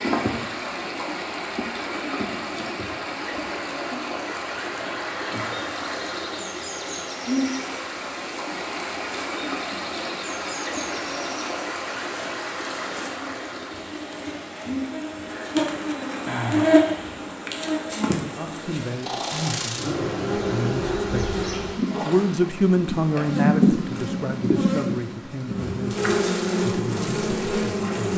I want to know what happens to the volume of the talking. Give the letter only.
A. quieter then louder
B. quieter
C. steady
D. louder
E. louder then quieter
E.